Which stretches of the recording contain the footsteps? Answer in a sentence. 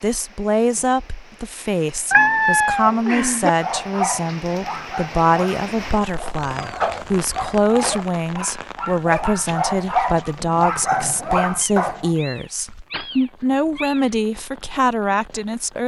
The footsteps can't be heard in this clip.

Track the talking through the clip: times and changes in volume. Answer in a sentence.
The talking can be heard from 0.0 to 15.8 s, at a steady volume.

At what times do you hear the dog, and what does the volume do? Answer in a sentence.
You can hear the dog from 3.5 to 12.1 s, getting quieter then louder.